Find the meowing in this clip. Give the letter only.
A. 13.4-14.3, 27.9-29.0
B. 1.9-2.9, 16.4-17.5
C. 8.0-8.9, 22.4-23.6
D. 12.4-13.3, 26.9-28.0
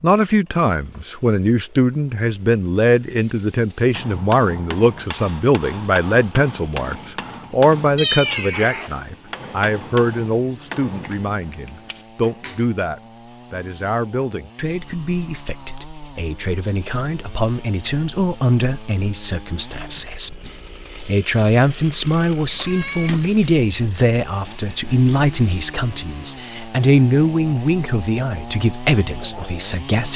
C.